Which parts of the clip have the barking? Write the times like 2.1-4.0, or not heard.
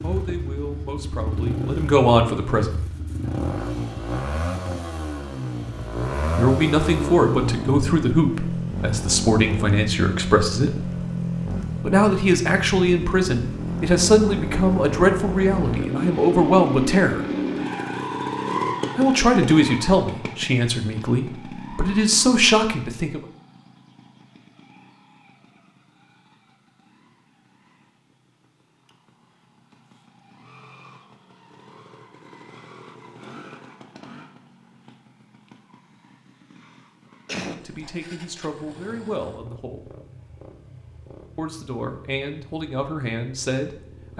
not heard.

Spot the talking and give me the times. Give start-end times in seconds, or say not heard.
0.0-2.8, 6.3-10.9, 11.8-17.2, 18.9-23.2, 37.5-39.9, 41.4-44.1.